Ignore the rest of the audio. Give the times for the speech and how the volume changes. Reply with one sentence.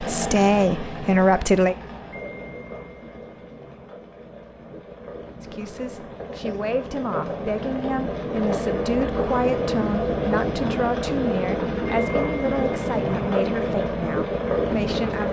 The speech can be heard briefly from 0.0 to 1.8 s; and from 5.4 to 15.2 s, at a steady volume.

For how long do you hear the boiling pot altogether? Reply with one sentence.
You can hear the boiling pot for 15 seconds altogether.